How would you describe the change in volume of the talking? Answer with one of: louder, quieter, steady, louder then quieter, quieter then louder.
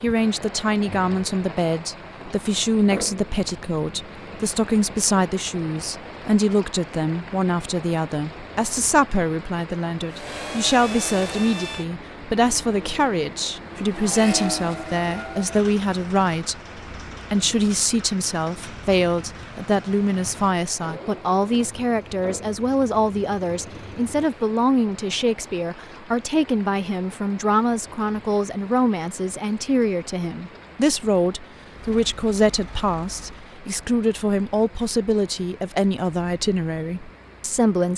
steady.